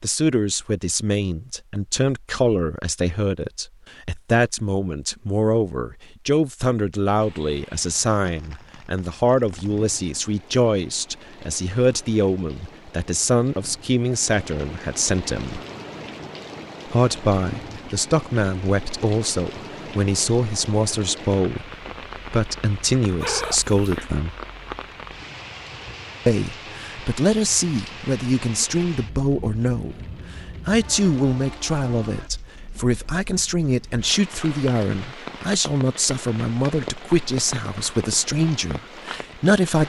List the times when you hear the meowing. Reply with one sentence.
You can hear the meowing from 23.2 to 24.1 s.